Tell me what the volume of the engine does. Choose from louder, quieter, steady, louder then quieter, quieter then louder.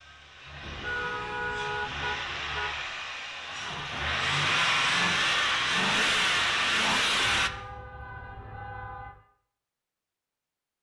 louder.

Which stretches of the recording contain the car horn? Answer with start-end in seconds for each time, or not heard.
0.6-2.8, 7.3-9.2.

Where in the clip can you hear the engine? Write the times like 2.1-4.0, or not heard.
0.0-7.5.